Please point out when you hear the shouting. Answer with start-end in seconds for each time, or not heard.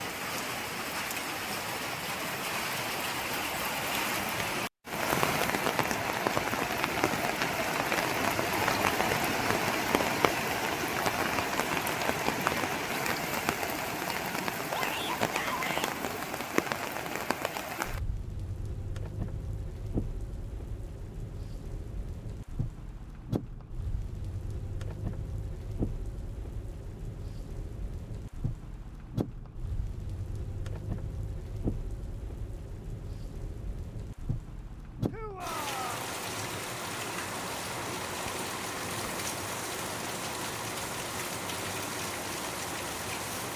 14.7-15.9, 35.1-36.0.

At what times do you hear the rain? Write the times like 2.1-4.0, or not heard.
0.0-43.5.